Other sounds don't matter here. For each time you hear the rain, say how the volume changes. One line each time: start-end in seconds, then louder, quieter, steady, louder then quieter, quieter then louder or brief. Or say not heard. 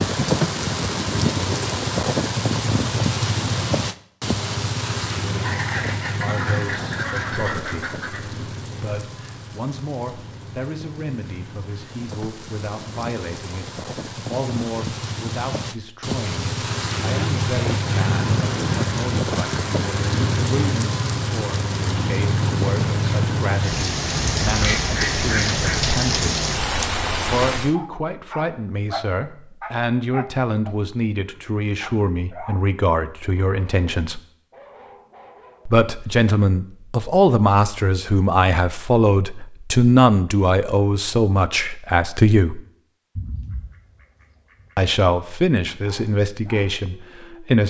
0.0-27.8 quieter then louder.